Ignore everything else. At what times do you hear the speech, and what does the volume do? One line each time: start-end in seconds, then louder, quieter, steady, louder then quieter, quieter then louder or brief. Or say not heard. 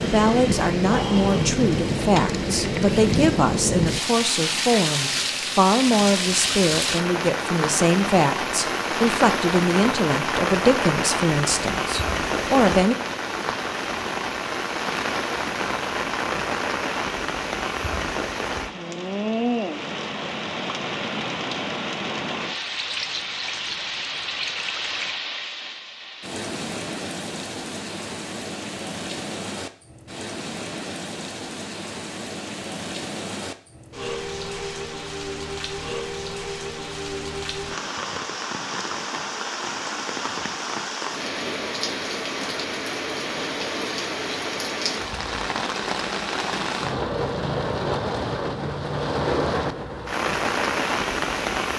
0.0-12.9 steady.